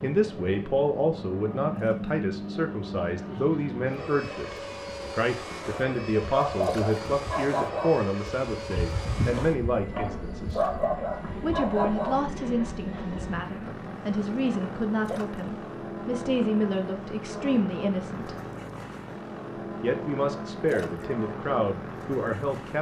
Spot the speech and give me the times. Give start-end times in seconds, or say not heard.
0.0-10.6, 11.4-18.4, 19.8-22.7.